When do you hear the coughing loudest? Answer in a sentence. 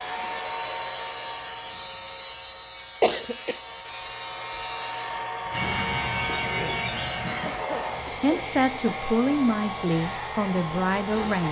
The volume of the coughing peaks at 3 seconds.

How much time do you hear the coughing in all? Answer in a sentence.
You can hear the coughing for 2 seconds altogether.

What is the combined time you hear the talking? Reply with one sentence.
The talking can be heard for 3 seconds in total.